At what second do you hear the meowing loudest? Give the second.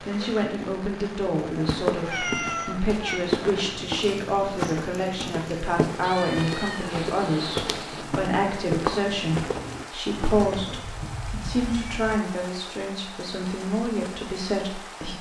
2 s.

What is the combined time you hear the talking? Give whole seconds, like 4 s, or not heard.
15 s.